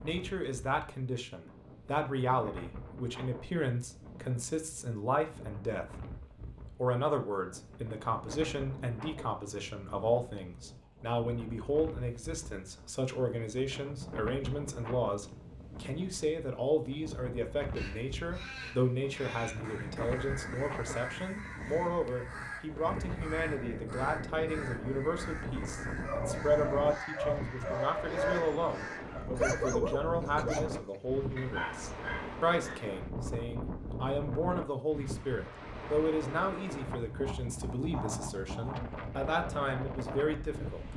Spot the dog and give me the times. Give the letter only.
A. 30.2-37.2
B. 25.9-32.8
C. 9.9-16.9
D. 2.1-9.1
B.